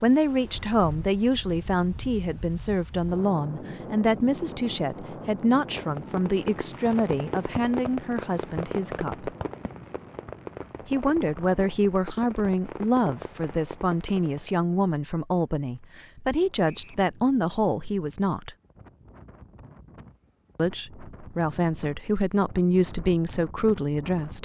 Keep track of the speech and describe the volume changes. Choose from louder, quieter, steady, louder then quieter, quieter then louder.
steady.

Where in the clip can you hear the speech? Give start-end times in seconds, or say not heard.
0.0-9.3, 10.8-18.6, 20.6-24.4.